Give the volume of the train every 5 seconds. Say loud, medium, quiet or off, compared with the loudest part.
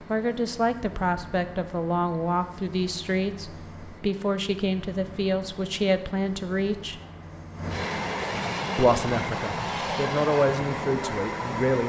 quiet, loud, loud.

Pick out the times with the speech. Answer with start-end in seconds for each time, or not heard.
0.1-7.0, 8.8-11.8.